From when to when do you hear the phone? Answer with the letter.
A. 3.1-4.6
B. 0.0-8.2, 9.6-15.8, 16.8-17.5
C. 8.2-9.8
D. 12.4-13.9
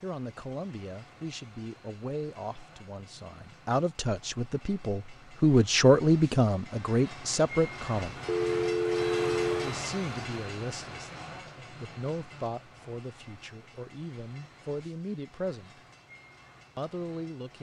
C.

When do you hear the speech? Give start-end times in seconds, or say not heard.
0.0-8.2, 9.6-15.8, 16.8-17.5.